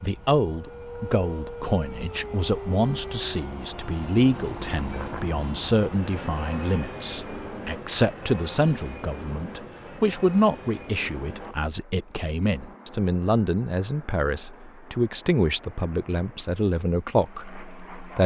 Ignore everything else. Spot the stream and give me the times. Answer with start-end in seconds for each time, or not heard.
not heard.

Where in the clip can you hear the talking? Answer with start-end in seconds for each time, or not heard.
0.0-18.2.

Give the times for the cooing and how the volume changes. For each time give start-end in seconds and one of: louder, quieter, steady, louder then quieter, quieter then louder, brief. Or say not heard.
not heard.